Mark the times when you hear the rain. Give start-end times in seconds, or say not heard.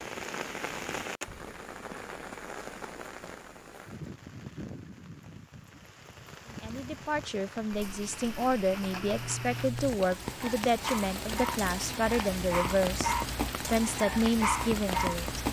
0.0-15.4.